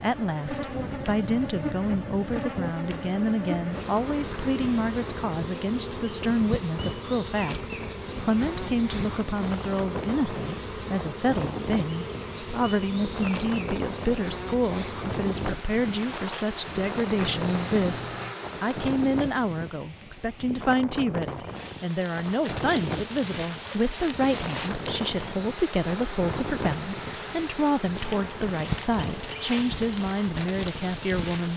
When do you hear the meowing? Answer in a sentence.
You can hear the meowing from 17.1 to 18.4 s.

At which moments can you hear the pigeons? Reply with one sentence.
You can't hear the pigeons here.